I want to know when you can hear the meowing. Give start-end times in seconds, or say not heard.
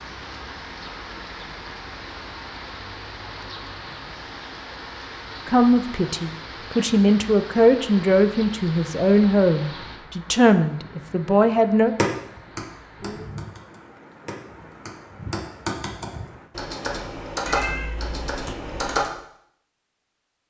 17.4-19.0.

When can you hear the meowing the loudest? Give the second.
18 s.